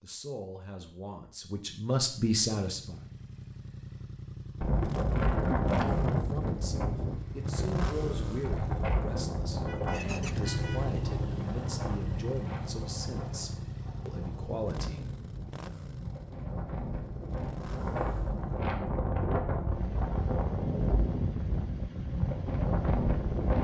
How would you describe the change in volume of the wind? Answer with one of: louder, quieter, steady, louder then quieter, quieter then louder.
quieter then louder.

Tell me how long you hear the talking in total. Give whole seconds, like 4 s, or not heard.
12 s.